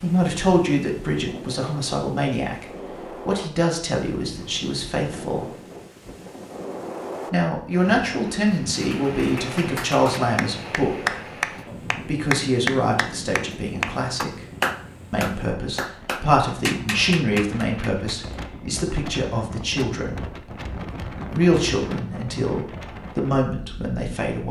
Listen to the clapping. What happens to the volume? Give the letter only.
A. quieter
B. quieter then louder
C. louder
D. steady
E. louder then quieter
E.